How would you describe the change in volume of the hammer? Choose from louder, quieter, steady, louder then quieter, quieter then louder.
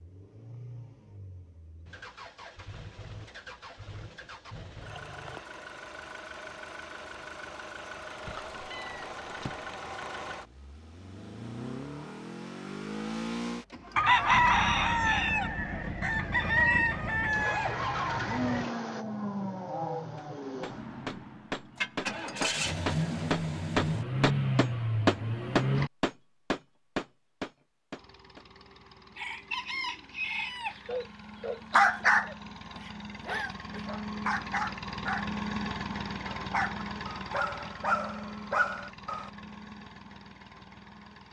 louder then quieter.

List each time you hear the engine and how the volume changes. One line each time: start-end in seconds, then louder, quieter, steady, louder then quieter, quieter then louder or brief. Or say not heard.
0.0-25.9 louder
27.9-41.2 louder then quieter.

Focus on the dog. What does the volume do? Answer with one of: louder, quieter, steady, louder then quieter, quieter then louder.
quieter.